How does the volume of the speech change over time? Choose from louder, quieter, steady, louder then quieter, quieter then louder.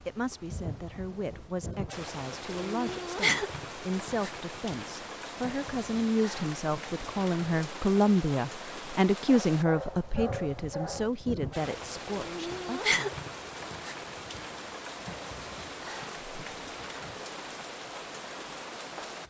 louder then quieter.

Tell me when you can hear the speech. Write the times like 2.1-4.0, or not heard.
0.0-13.2.